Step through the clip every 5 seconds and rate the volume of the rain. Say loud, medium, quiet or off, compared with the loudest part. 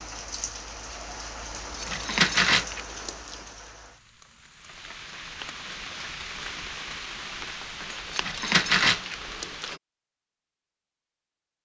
loud, loud, off.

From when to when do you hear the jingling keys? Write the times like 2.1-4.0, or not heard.
1.8-3.4, 7.9-9.7.